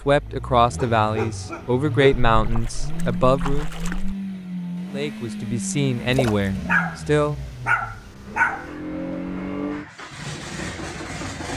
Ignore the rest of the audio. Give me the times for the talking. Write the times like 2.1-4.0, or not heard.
0.1-3.7, 4.9-7.4.